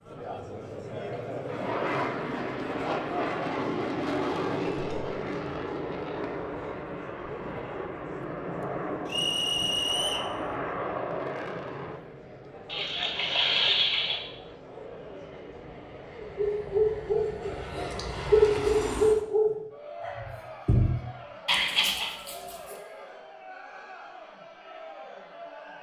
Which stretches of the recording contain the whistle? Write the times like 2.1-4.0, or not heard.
9.1-10.3.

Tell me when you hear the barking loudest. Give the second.
18 s.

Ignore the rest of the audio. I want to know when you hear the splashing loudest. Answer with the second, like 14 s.
14 s.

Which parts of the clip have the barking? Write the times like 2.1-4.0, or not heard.
16.2-22.8.